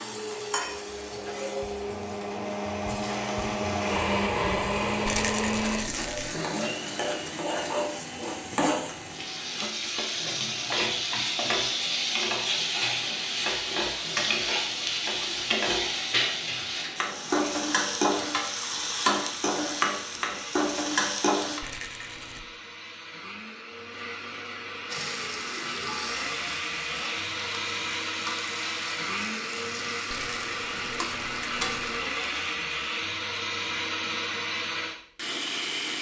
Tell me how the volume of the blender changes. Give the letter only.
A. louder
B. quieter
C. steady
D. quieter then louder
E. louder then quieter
D.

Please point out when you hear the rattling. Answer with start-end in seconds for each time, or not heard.
5.0-6.3, 21.6-22.4, 30.1-31.9.